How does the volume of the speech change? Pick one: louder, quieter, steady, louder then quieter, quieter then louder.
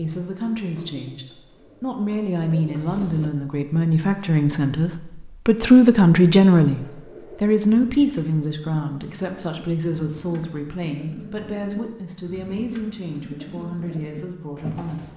louder then quieter.